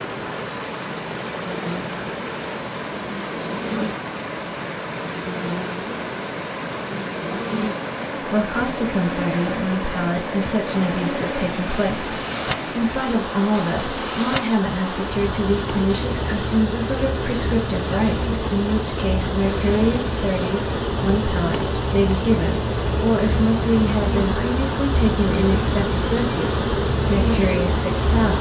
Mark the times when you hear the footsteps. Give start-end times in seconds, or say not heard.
not heard.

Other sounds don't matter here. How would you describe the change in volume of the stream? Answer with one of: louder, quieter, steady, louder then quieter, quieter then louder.
steady.